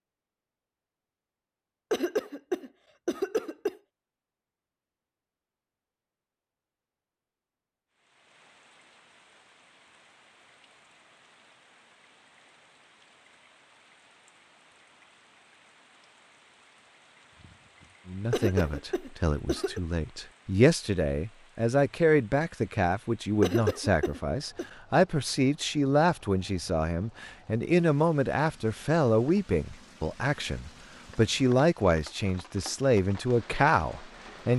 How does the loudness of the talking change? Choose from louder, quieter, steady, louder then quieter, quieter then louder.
steady.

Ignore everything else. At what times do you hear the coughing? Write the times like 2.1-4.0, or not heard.
1.9-3.8, 18.3-19.8, 23.4-24.6.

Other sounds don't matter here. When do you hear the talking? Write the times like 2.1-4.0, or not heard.
18.1-34.5.